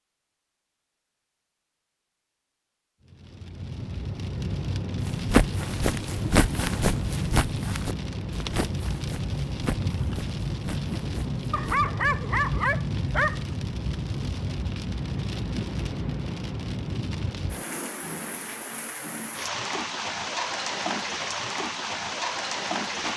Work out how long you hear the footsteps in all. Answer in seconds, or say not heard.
7 s.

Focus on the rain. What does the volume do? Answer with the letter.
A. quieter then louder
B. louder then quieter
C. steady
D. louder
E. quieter
C.